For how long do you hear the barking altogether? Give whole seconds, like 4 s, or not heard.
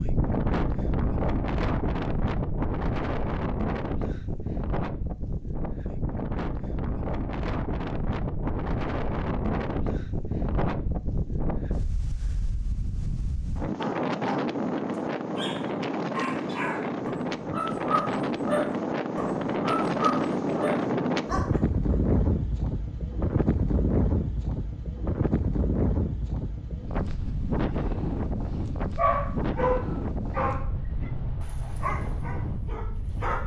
12 s.